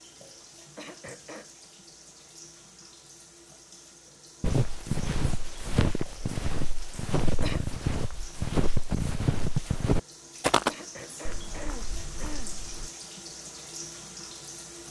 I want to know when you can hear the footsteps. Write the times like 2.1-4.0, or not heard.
4.4-12.9.